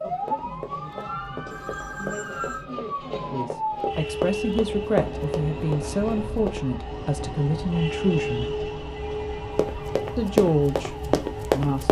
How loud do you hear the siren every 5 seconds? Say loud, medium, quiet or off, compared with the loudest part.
loud, loud, medium.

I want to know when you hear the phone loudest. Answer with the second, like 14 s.
2 s.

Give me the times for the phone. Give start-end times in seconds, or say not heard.
1.5-2.6, 8.9-10.2.